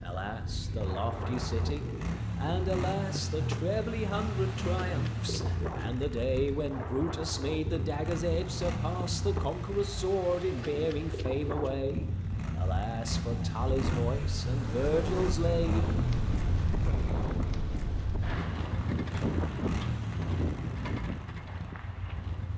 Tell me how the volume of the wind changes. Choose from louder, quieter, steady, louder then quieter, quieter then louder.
louder.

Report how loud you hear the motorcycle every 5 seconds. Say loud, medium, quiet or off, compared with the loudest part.
loud, loud, loud, loud, medium.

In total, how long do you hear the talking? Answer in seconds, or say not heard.
16 s.